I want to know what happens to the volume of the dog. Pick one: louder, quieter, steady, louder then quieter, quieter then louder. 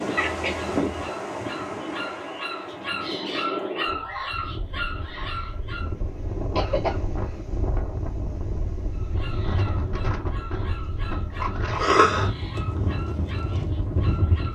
louder then quieter.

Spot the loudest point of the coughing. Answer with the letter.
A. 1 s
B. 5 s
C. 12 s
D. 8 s
C.